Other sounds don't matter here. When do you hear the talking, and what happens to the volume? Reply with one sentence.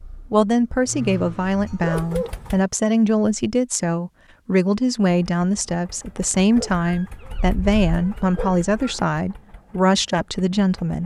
You can hear the talking from 0.3 to 11.0 s, at a steady volume.